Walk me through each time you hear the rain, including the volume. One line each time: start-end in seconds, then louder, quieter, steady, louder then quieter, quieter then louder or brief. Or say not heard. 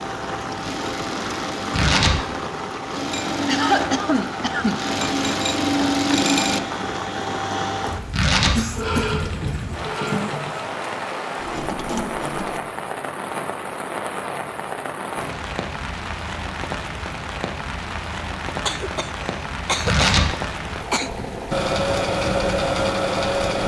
0.0-23.6 steady.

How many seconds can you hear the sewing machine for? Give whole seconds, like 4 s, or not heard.
15 s.